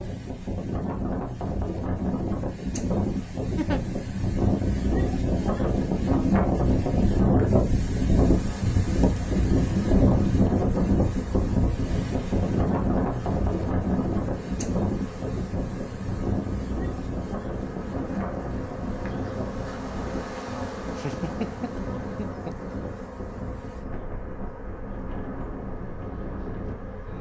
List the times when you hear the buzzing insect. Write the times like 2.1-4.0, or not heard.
8.2-27.1.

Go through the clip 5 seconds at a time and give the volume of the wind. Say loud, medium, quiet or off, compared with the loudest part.
medium, loud, loud, medium, quiet, quiet.